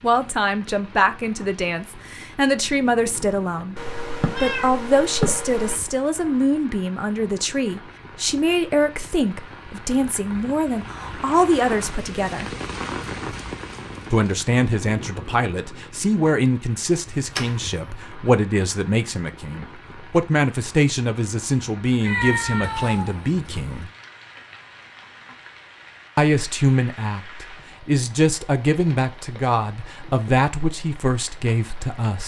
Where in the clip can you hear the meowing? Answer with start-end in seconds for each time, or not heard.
3.8-5.8, 17.1-17.8, 22.0-23.9.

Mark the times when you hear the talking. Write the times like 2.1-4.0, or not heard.
0.0-12.5, 14.1-23.9, 26.1-32.2.